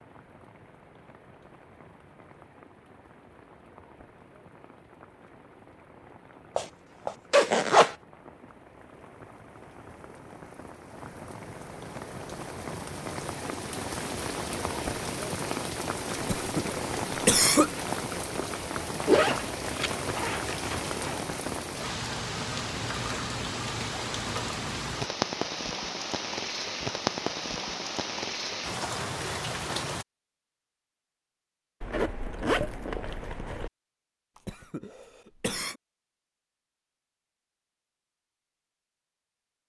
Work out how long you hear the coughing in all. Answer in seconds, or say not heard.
3 s.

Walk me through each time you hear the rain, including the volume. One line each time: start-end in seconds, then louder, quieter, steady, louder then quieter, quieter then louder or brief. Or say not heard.
0.0-30.1 louder.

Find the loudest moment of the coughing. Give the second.
17 s.